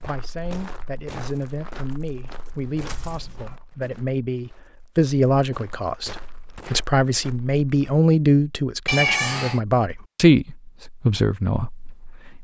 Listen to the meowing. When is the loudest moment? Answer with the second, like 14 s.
9 s.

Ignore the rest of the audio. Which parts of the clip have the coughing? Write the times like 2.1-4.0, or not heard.
not heard.